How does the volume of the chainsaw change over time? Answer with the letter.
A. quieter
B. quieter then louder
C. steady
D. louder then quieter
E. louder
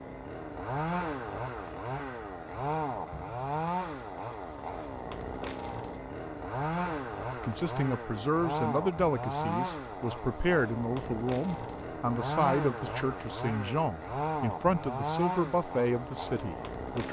C.